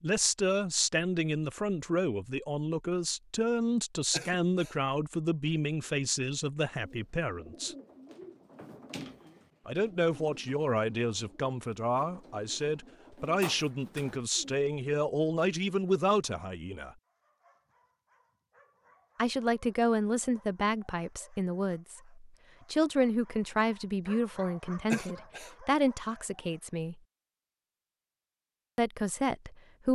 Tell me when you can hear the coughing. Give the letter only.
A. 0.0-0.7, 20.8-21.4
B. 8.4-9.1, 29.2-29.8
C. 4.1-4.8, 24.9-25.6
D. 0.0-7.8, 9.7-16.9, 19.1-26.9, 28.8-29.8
C.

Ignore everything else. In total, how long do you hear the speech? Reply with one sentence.
The speech can be heard for 24 seconds in total.